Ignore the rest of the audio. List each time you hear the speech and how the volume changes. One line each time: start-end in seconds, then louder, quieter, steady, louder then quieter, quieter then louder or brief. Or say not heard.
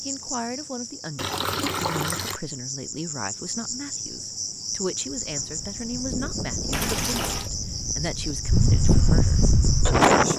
0.1-10.1 steady.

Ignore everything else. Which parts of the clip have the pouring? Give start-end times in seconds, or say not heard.
1.1-2.4, 6.7-7.5.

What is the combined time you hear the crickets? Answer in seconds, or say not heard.
10 s.